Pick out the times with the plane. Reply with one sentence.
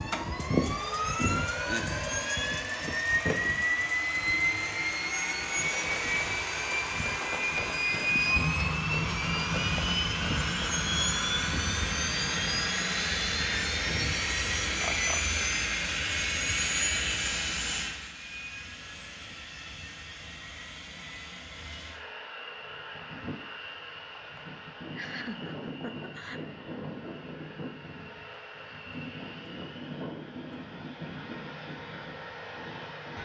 You can hear the plane from 0.0 to 33.2 s.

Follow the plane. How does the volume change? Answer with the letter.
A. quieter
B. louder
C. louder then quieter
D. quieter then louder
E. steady
A.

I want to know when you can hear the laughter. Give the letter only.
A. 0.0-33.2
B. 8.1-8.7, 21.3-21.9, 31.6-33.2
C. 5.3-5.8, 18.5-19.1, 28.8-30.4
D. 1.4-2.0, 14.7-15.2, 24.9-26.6
D.